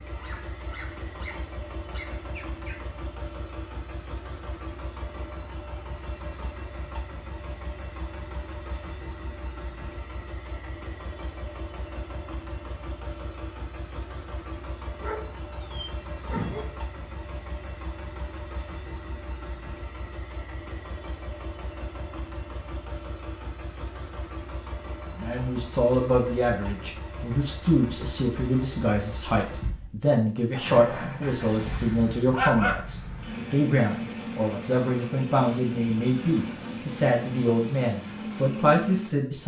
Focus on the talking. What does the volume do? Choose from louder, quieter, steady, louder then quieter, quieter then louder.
steady.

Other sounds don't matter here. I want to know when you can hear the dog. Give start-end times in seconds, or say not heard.
0.1-2.9, 15.0-16.6, 30.6-32.8.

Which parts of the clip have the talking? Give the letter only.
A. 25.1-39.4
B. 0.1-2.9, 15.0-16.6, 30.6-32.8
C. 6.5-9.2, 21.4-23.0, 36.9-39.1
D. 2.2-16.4
A.